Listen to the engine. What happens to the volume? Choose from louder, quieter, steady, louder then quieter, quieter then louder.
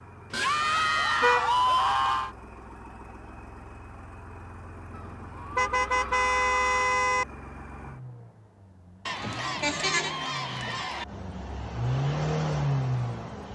louder.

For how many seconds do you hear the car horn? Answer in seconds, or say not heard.
4 s.